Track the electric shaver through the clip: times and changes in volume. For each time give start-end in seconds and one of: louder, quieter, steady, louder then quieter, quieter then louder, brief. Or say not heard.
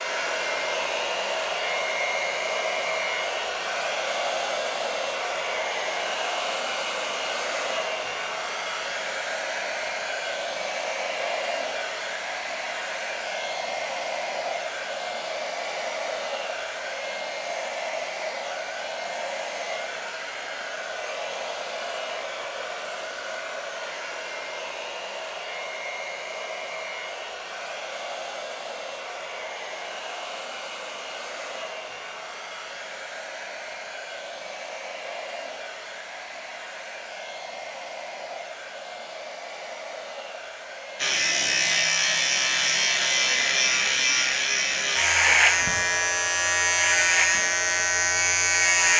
41.0-48.9 steady.